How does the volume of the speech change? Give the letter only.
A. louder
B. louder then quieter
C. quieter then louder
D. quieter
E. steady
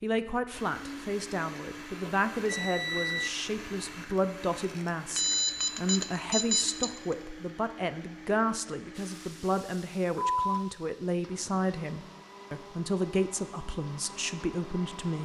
E.